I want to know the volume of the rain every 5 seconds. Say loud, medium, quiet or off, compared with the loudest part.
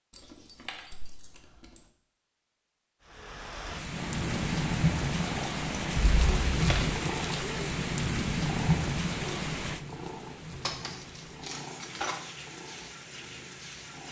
loud, loud, quiet.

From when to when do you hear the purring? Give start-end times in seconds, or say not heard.
4.0-14.0.